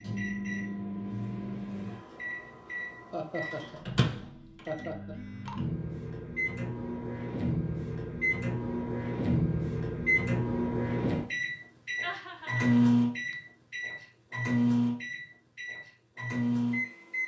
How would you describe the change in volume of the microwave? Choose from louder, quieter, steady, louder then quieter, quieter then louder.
louder.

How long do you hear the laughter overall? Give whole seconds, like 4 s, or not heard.
3 s.